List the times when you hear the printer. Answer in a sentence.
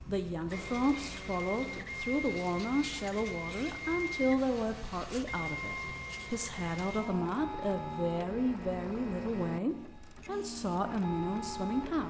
You can hear the printer from 0.0 to 12.0 s.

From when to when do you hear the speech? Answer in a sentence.
The speech can be heard from 0.0 to 12.0 s.